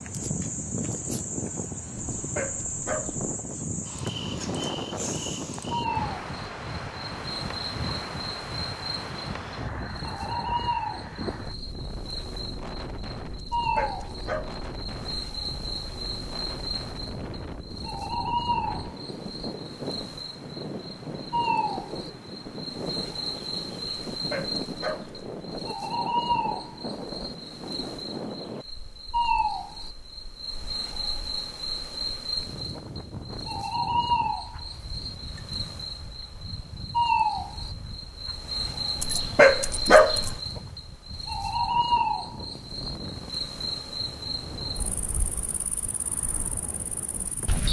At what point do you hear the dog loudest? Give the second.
40 s.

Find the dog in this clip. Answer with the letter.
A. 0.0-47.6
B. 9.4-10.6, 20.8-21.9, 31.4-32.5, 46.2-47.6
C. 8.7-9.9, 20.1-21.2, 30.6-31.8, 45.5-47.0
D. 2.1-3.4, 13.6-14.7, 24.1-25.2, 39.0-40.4
D.